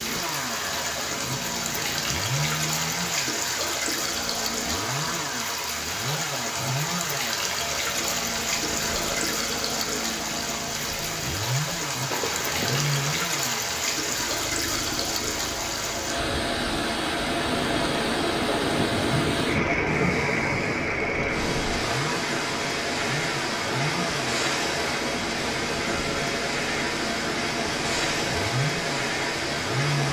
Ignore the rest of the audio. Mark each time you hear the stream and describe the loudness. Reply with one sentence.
You can hear the stream from 0.0 to 30.0 s, at a steady volume.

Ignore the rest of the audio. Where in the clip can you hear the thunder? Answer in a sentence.
The thunder can be heard from 12.1 to 13.2 s and from 17.4 to 21.9 s.